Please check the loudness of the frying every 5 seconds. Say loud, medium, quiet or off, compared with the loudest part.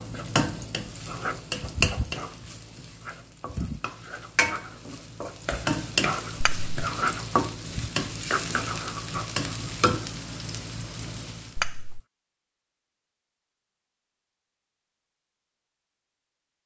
loud, loud, medium, off.